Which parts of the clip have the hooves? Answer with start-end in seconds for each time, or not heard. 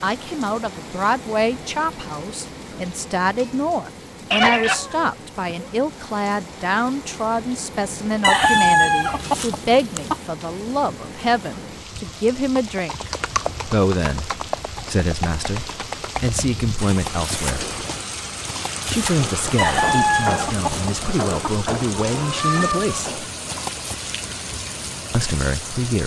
12.1-23.9.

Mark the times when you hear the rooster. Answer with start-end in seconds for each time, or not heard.
8.2-10.2, 19.6-21.5.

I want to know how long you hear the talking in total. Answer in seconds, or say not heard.
23 s.